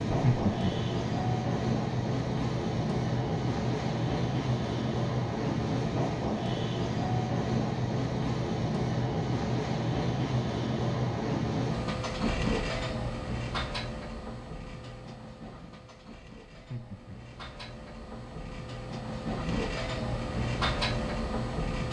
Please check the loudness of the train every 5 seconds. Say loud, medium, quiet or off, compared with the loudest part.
loud, loud, loud, medium, loud.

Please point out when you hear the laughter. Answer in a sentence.
You can hear the laughter from 0.1 to 0.7 s and from 16.5 to 17.3 s.